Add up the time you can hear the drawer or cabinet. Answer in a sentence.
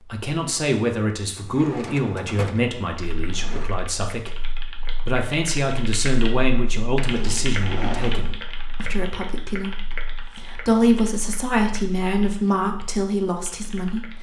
The drawer or cabinet can be heard for 4 seconds in total.